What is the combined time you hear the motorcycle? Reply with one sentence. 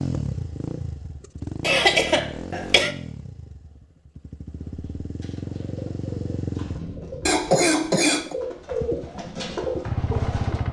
The motorcycle can be heard for 9 seconds in total.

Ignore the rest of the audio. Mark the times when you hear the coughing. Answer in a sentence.
The coughing can be heard from 1.6 to 2.9 s and from 7.2 to 8.3 s.